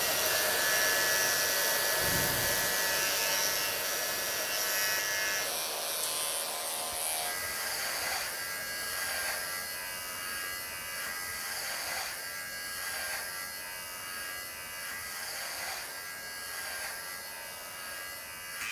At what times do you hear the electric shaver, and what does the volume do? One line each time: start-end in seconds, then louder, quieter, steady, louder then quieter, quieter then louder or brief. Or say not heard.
0.0-18.6 quieter.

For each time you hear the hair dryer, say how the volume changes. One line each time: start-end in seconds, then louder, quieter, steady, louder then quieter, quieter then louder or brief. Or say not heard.
0.0-18.6 quieter.